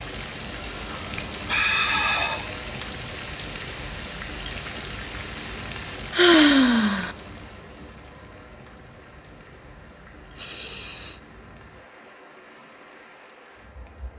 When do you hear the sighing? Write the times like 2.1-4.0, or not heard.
0.5-2.5, 6.1-7.2, 10.3-11.2.